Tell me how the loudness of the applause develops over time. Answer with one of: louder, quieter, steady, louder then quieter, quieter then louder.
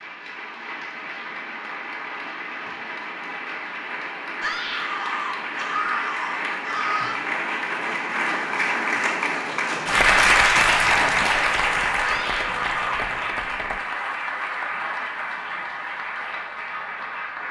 louder then quieter.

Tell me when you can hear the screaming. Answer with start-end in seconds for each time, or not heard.
4.4-7.2, 12.0-12.9.